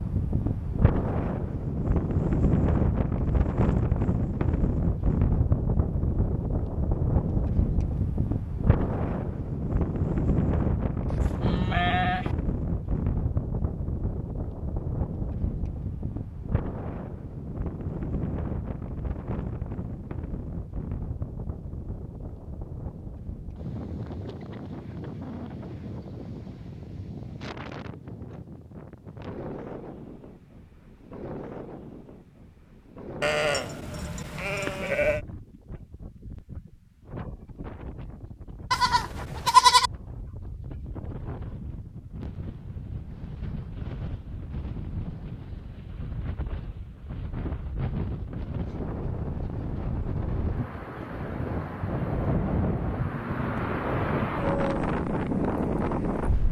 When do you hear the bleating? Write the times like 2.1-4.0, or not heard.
11.1-12.3, 33.2-35.2, 38.7-39.9.